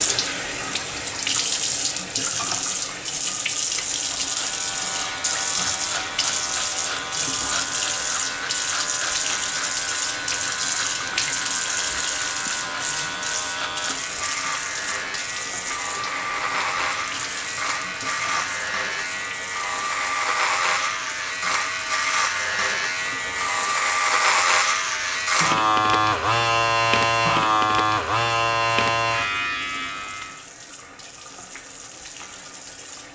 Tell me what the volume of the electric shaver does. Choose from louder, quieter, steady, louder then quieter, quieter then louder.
louder.